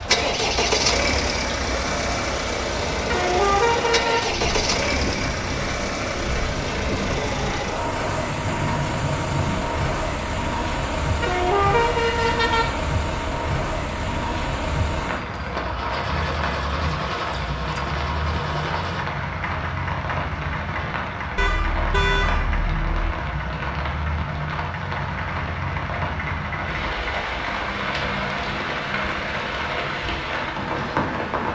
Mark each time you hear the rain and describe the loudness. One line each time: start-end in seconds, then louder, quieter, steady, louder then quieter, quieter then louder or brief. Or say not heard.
0.0-31.4 steady.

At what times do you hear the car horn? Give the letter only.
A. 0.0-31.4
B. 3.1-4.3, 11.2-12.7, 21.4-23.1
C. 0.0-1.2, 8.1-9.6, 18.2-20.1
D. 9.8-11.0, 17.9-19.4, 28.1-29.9
B.